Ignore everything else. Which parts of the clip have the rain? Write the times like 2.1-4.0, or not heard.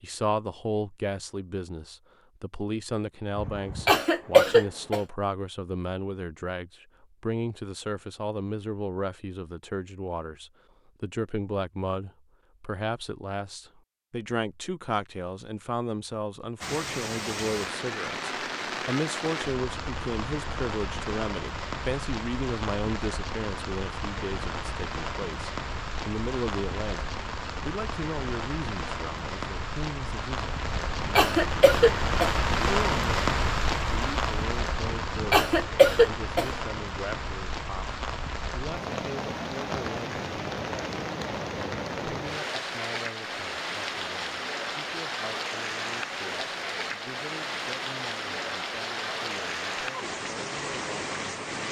16.6-51.6.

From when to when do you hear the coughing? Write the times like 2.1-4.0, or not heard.
3.4-5.0, 30.6-32.4, 34.8-36.5.